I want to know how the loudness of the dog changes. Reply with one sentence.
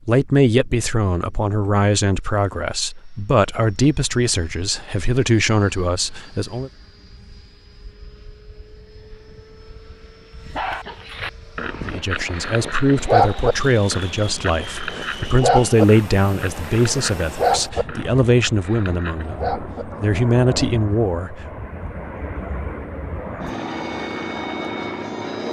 The volume of the dog goes up, then down.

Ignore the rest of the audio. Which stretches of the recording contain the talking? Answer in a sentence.
The talking can be heard from 0.1 to 6.7 s and from 11.8 to 21.4 s.